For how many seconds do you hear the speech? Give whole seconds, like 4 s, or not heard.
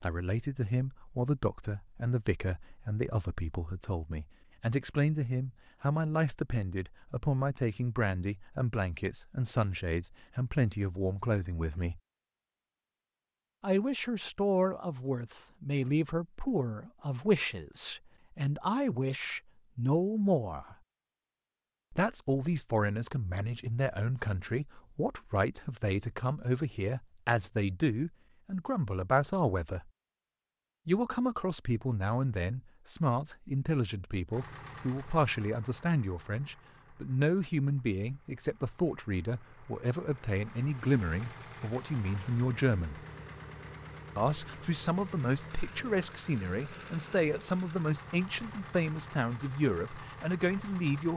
46 s.